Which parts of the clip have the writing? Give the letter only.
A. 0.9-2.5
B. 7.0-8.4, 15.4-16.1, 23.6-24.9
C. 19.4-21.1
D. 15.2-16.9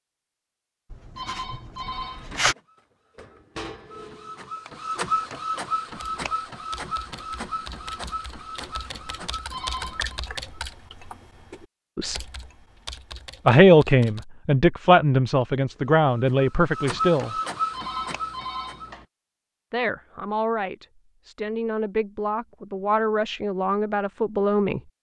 A.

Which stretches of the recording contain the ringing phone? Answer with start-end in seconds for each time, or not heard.
1.1-2.5, 9.5-10.2, 17.7-19.1.